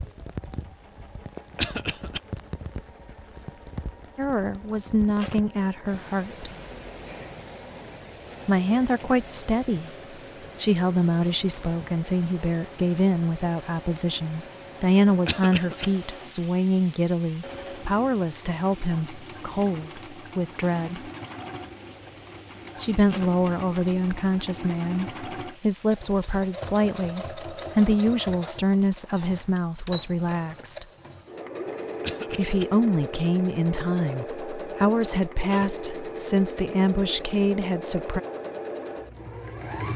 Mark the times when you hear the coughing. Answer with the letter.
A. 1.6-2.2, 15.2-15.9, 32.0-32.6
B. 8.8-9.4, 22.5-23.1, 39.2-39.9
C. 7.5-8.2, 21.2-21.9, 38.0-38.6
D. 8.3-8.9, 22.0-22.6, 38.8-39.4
A.